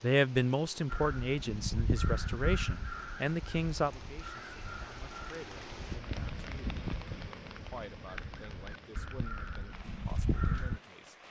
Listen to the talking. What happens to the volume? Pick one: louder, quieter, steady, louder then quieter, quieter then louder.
quieter.